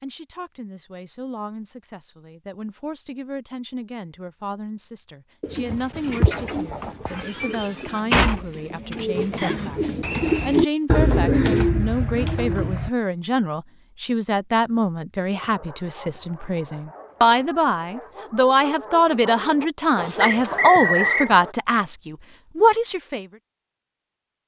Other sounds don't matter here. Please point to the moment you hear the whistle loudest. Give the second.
21 s.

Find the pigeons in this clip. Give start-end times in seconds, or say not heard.
5.4-12.9.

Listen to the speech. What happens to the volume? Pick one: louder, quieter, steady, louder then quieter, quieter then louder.
louder.